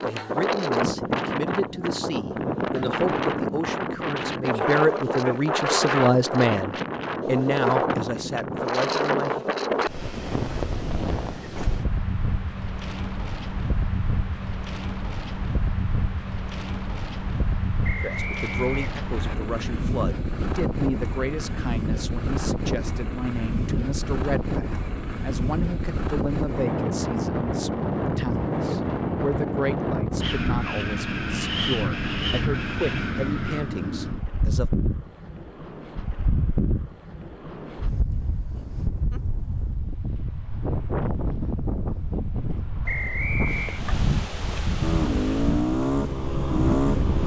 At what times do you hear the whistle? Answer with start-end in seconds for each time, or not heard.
17.8-19.4, 42.9-43.8.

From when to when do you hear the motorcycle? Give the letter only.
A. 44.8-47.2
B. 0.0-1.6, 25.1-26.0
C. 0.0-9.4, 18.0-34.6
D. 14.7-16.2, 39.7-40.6
A.